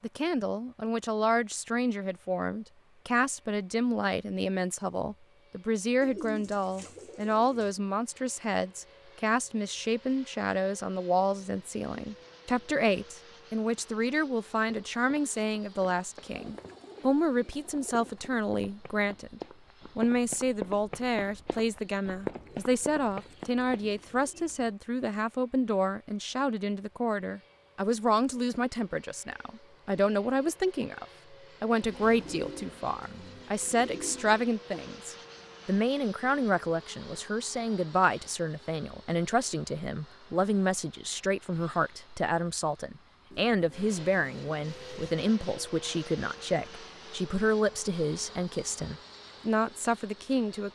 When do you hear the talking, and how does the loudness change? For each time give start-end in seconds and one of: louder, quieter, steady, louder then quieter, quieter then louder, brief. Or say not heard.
0.0-50.6 steady.